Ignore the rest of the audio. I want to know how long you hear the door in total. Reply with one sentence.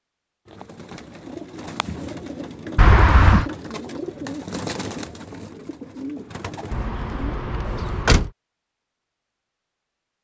The door can be heard for 2 seconds in total.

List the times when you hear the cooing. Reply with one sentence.
The cooing can be heard from 0.5 to 8.1 s.